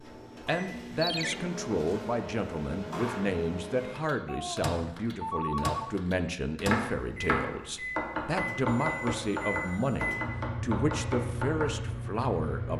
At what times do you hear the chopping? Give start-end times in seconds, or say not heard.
6.6-11.7.